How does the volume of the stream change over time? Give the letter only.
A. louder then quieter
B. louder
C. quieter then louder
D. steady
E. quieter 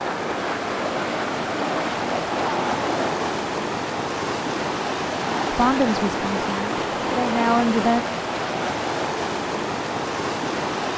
D.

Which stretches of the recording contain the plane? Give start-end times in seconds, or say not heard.
0.0-3.4.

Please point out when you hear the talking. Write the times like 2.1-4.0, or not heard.
5.5-8.1.